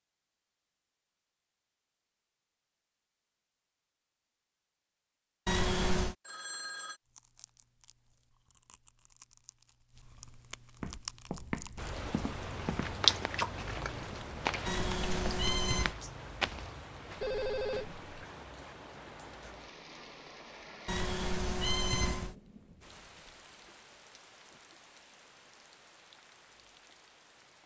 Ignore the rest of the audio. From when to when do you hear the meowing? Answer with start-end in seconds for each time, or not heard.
5.5-6.2, 14.7-15.9, 20.9-22.4.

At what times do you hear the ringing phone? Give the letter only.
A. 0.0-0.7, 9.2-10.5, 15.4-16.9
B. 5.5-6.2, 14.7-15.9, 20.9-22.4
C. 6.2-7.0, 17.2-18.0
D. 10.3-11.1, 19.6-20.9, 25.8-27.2
C.